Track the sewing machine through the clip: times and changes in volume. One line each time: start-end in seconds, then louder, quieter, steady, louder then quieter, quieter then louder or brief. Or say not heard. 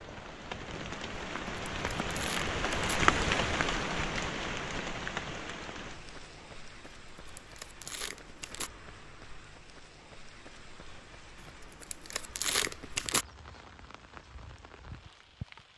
not heard.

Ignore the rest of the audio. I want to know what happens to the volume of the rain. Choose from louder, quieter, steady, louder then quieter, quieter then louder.
quieter.